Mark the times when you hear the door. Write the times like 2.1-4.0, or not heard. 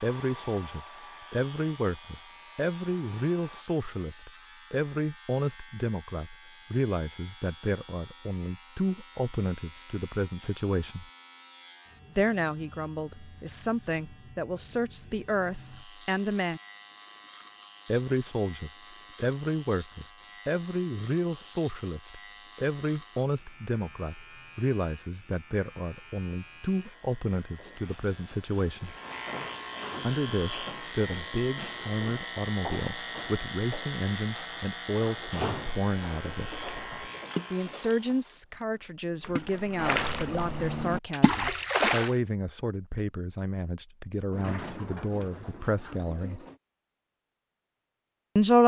44.3-46.5.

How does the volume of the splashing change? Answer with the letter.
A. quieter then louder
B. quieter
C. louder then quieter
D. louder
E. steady
A.